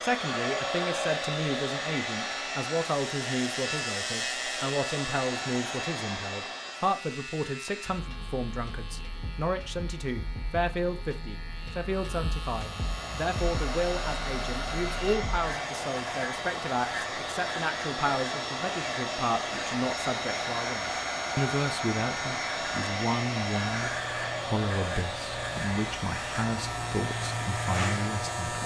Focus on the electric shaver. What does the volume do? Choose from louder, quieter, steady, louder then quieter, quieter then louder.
quieter then louder.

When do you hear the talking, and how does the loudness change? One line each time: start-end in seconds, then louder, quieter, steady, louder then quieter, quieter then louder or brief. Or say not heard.
0.0-28.6 steady.